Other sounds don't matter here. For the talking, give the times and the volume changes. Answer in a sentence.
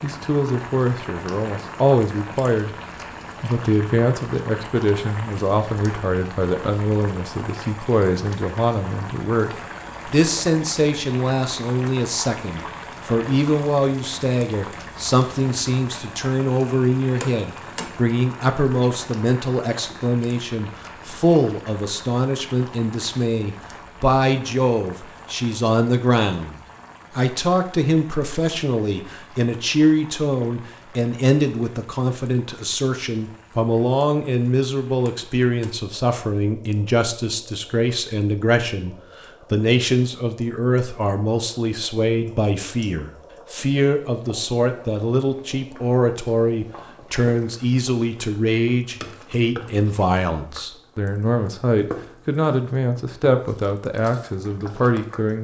The talking can be heard briefly from 0.0 to 2.7 s; and from 3.4 to 55.3 s, at a steady volume.